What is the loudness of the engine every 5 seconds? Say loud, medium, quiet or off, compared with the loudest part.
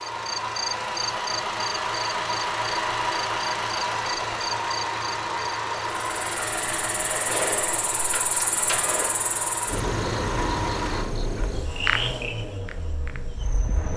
loud, loud, medium.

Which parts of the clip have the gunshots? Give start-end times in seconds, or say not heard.
7.1-9.1.